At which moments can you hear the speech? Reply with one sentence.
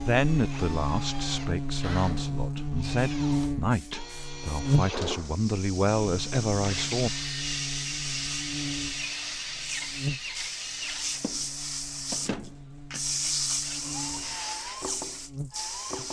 You can hear the speech from 0.0 to 7.1 s.